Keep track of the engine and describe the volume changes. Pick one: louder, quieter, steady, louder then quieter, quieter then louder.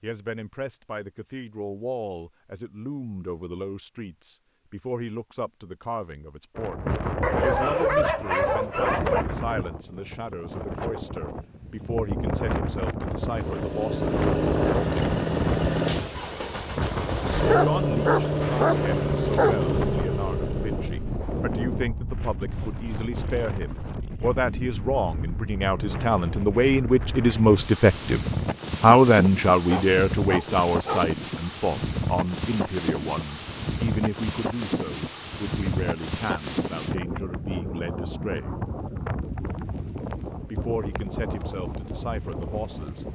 steady.